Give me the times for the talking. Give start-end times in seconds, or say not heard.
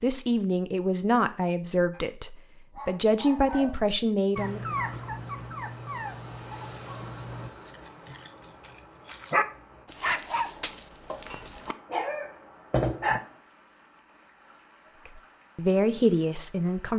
0.0-4.8, 15.1-16.9.